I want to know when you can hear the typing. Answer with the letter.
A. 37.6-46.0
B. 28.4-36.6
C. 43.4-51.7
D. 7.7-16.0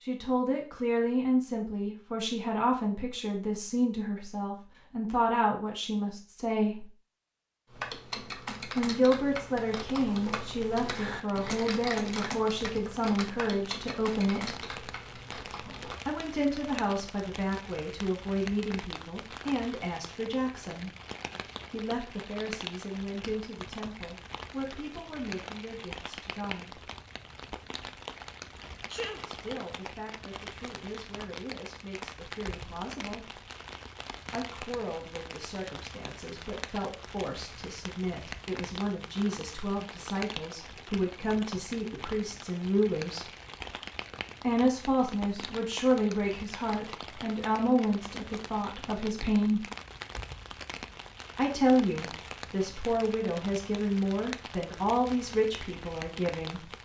D.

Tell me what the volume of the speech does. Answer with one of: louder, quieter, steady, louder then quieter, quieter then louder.
quieter then louder.